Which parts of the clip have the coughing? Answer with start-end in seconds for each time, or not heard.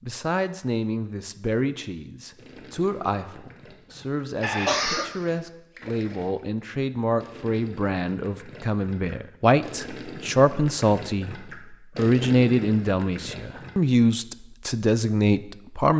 4.4-5.1.